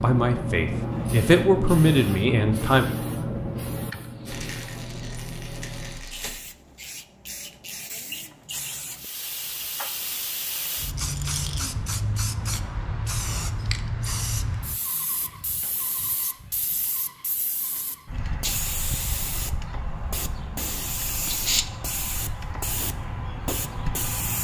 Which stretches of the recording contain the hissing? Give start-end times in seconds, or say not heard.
0.0-24.4.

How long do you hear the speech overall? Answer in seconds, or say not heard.
3 s.